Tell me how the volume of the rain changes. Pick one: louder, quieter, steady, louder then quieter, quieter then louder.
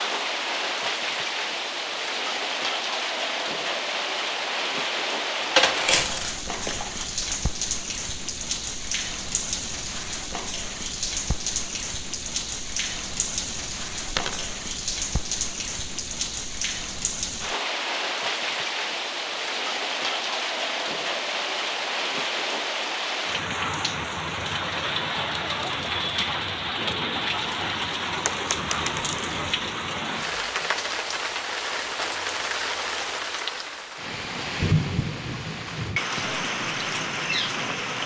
steady.